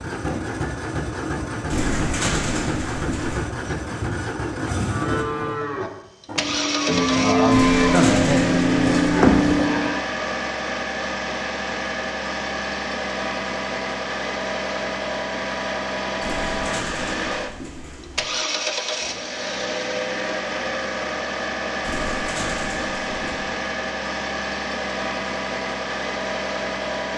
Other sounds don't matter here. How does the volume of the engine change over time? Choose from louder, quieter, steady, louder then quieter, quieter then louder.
steady.